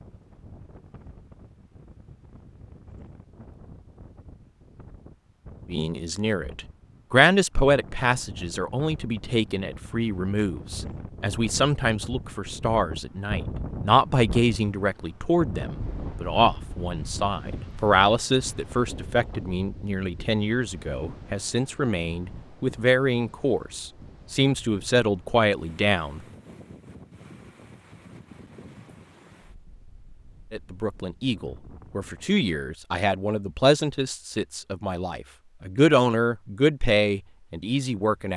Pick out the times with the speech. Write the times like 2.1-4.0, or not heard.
5.7-26.2, 30.5-38.3.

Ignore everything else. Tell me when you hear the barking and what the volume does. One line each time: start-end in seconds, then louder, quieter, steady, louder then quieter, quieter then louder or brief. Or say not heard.
not heard.